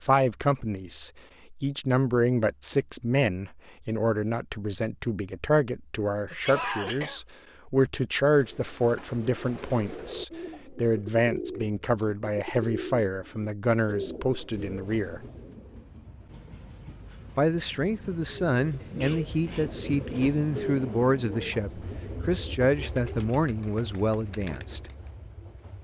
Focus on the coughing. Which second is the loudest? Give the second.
7 s.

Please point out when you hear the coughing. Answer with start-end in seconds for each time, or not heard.
6.2-7.2, 19.0-20.2.